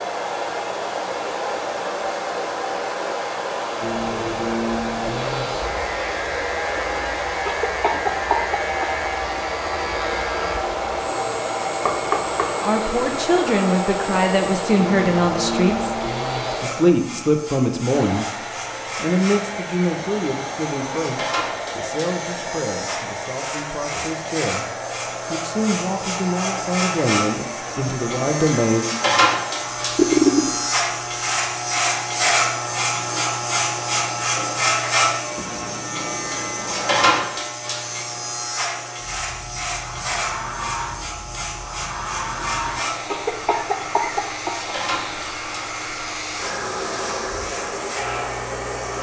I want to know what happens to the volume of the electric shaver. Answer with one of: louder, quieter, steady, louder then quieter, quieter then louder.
louder then quieter.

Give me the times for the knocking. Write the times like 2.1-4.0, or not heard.
11.8-12.5.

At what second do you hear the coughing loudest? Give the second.
30 s.